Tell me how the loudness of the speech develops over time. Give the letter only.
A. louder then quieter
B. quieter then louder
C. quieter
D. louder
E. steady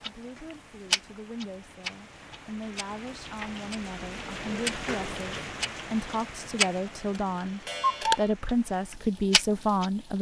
D.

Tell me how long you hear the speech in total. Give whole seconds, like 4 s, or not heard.
10 s.